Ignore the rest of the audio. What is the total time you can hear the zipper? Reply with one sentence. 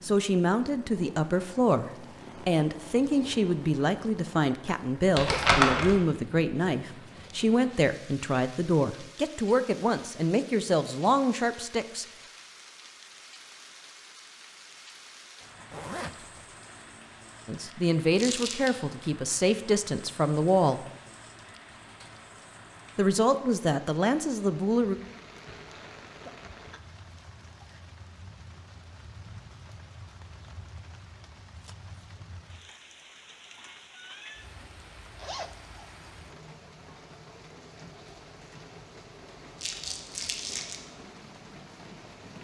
The zipper can be heard for 3 seconds in total.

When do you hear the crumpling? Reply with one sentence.
You can hear the crumpling from 5.2 to 6.0 s, from 18.1 to 18.7 s and from 39.6 to 40.8 s.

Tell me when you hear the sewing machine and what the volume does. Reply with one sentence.
You can't hear the sewing machine here.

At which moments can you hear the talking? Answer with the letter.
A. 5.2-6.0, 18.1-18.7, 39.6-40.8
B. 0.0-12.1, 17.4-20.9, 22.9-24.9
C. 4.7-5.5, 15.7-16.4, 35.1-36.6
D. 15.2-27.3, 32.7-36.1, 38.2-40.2
B.